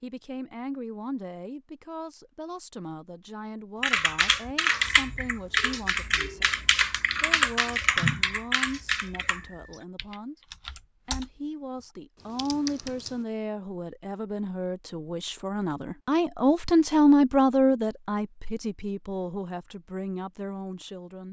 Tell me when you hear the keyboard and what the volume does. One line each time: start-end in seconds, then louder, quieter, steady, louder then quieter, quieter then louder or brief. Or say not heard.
3.8-13.2 quieter then louder.